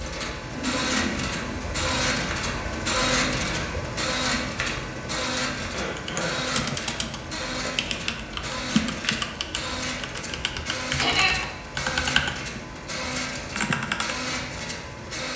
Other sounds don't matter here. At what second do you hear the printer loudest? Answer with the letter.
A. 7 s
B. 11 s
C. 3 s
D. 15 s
C.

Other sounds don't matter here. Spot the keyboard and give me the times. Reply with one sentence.
You can hear the keyboard from 6.0 to 14.2 s.